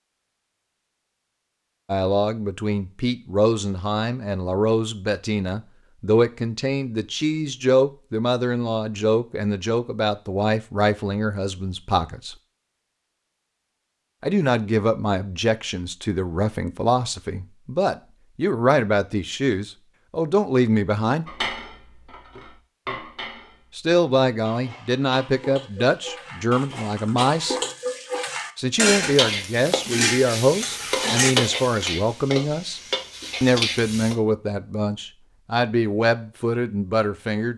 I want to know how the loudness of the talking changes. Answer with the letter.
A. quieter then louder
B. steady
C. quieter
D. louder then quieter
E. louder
B.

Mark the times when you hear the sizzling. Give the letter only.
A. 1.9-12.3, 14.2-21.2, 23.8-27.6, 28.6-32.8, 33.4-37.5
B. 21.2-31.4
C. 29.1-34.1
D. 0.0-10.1
C.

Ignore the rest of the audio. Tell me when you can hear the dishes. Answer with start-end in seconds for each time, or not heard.
21.2-31.4.